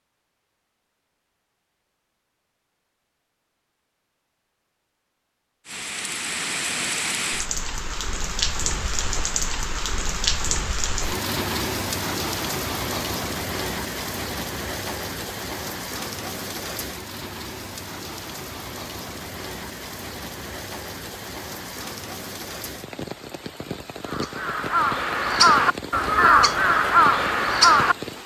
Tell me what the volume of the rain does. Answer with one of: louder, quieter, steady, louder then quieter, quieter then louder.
quieter.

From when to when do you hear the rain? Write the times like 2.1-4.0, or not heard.
5.7-28.2.